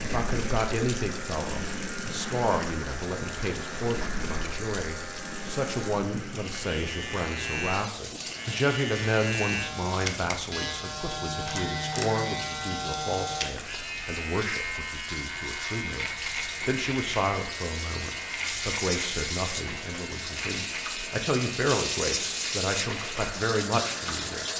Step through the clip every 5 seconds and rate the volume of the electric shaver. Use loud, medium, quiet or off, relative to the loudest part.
medium, loud, loud, loud, medium.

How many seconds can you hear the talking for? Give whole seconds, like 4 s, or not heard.
24 s.